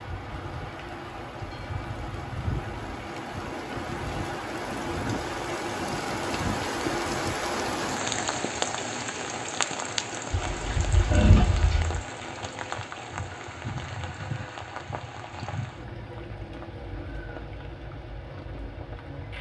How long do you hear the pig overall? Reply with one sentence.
You can hear the pig for 2 seconds altogether.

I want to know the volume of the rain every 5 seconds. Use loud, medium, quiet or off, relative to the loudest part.
medium, loud, medium, medium.